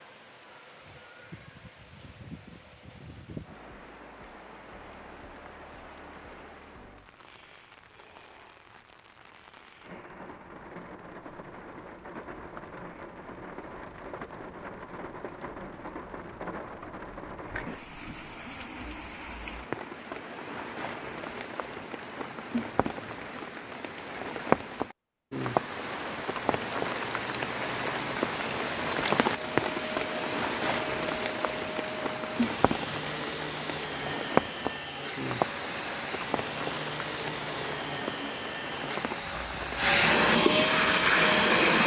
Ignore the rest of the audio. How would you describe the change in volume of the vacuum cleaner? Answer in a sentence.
The volume of the vacuum cleaner goes up.